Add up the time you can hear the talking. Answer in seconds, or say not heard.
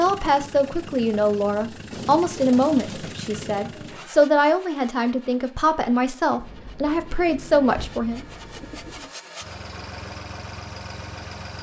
8 s.